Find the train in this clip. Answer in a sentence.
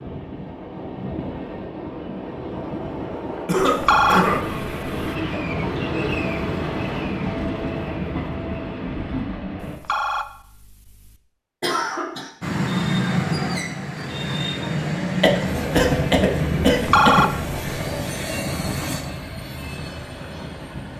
The train can be heard from 0.0 to 9.8 s and from 12.4 to 20.9 s.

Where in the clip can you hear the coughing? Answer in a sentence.
The coughing can be heard from 3.5 to 4.5 s, from 11.6 to 12.3 s and from 15.2 to 17.2 s.